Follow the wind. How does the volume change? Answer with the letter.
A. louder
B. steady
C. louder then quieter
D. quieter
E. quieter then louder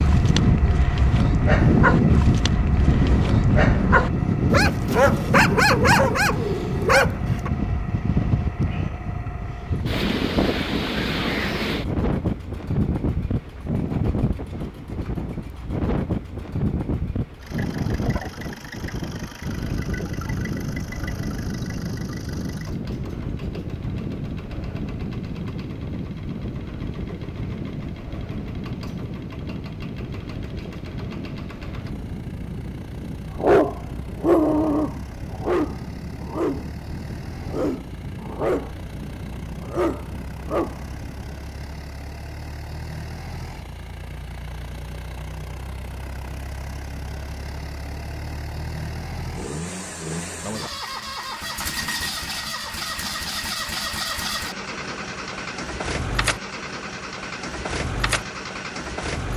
D.